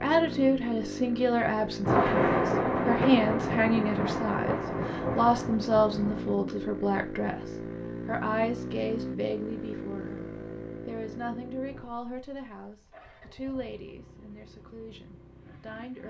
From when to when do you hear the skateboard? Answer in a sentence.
The skateboard can't be heard in this clip.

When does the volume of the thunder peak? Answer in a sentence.
The volume of the thunder peaks at 2 seconds.